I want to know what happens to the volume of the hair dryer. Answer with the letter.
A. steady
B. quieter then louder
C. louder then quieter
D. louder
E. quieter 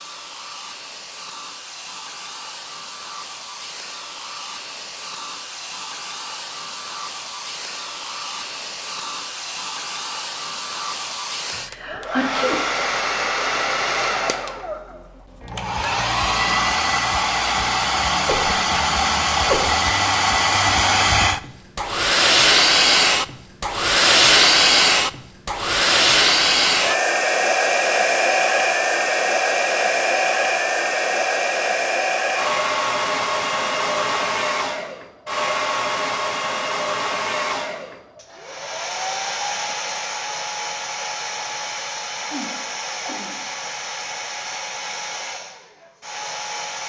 C.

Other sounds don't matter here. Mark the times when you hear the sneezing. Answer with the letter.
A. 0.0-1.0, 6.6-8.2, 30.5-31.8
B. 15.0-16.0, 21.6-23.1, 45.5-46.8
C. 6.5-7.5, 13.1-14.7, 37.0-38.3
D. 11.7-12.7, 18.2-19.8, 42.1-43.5
D.